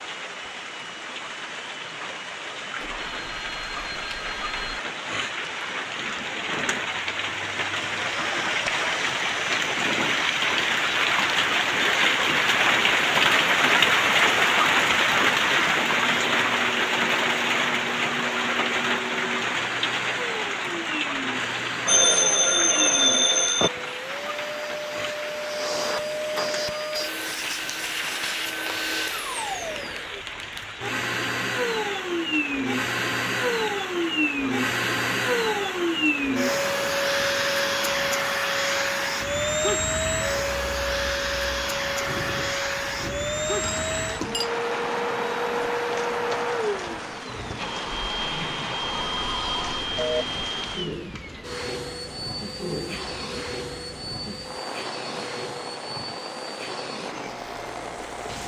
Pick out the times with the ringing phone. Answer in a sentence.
The ringing phone can be heard from 2.8 to 4.8 s, from 21.9 to 23.7 s and from 48.9 to 50.5 s.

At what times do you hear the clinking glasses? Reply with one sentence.
You can hear the clinking glasses from 43.6 to 44.5 s.